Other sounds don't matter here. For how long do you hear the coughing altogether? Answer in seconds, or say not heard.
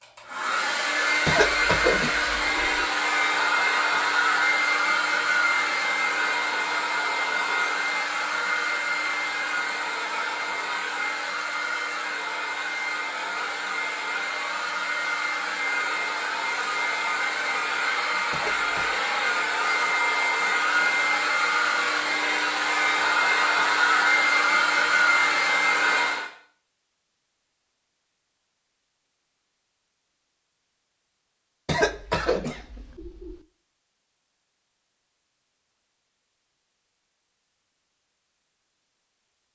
4 s.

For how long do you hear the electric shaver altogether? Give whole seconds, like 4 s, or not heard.
not heard.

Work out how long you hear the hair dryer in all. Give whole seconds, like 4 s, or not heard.
26 s.